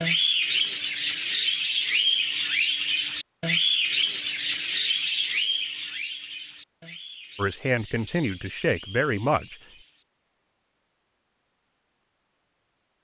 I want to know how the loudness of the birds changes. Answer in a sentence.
The volume of the birds goes down.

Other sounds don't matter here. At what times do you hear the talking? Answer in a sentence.
You can hear the talking from 7.3 to 9.6 s.